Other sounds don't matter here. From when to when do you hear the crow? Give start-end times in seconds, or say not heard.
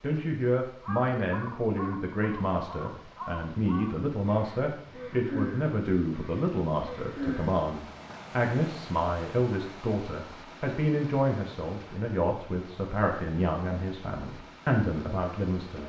0.8-7.7.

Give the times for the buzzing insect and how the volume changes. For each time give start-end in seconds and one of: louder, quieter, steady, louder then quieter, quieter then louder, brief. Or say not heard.
not heard.